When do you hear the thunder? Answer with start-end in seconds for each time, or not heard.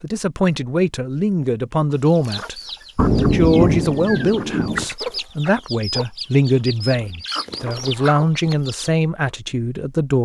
3.0-4.8.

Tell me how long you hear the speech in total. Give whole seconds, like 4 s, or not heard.
10 s.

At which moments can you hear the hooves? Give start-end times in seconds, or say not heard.
not heard.